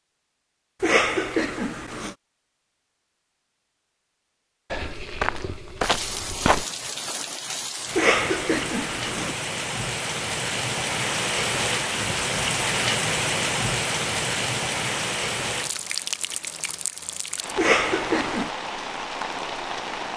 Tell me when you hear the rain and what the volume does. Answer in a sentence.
You can hear the rain from 5.8 to 20.1 s, getting louder then quieter.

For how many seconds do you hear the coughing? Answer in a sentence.
You can hear the coughing for 4 seconds altogether.